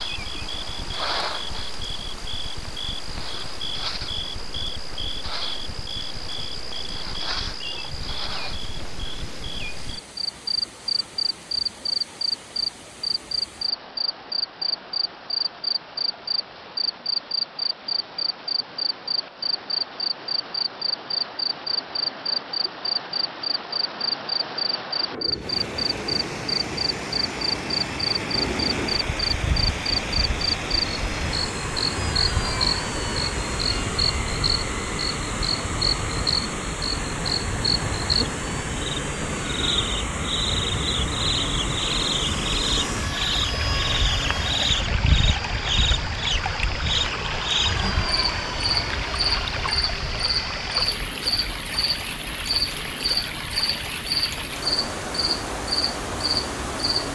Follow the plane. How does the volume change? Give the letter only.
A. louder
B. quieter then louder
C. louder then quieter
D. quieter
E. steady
D.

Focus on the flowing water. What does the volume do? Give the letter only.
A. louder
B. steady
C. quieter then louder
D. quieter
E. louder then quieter
A.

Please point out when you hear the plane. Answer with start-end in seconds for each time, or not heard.
25.1-57.1.